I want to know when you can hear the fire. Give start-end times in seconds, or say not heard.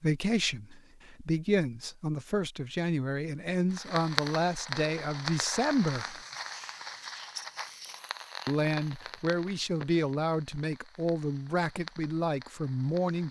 3.7-13.2.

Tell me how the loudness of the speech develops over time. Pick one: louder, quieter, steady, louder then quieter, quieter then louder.
steady.